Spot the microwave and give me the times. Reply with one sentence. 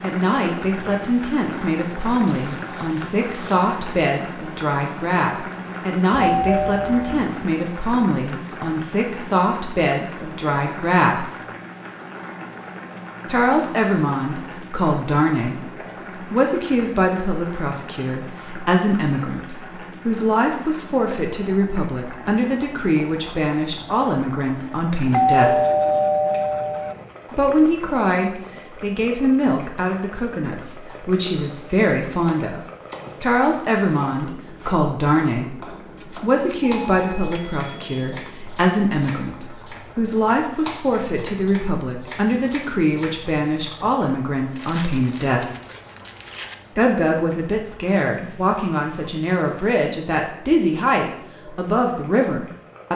You can't hear the microwave here.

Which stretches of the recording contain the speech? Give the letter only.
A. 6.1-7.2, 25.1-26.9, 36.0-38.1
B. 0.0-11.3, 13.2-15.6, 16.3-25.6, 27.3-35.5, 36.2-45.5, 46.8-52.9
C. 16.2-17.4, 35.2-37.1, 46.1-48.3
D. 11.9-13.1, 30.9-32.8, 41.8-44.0
B.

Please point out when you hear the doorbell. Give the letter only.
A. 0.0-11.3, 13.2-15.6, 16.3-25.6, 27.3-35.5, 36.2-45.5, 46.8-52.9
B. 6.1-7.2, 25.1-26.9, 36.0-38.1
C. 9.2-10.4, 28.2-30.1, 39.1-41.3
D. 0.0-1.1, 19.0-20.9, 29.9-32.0
B.